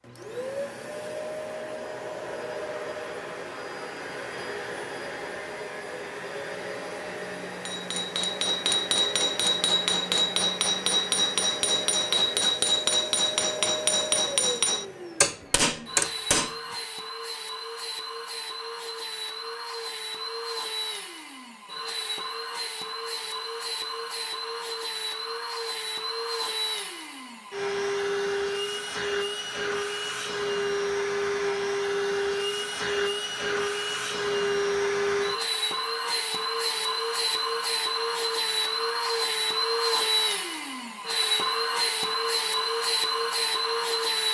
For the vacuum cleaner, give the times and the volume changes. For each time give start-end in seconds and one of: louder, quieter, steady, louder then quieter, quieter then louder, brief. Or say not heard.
0.0-44.2 louder.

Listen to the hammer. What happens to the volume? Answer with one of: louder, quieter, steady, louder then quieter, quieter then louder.
steady.